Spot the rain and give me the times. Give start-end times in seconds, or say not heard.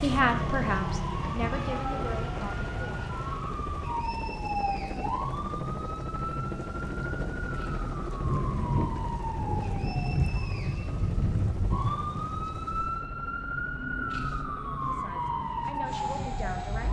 0.0-13.0.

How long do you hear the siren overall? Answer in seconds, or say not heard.
17 s.